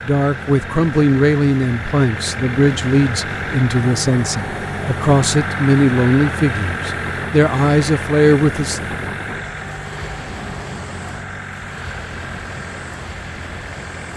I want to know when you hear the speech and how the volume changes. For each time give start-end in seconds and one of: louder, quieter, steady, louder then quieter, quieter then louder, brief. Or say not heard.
0.1-8.8 steady.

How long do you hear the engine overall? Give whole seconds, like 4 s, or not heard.
14 s.